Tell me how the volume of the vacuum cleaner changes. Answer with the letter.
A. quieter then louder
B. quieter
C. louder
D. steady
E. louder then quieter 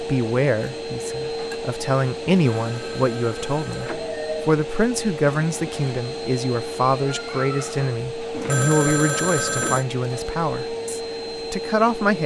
D.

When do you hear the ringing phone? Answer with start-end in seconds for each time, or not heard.
2.5-4.2, 8.3-9.8.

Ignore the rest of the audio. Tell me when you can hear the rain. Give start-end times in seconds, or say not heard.
not heard.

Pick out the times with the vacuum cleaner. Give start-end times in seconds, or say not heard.
0.0-12.2.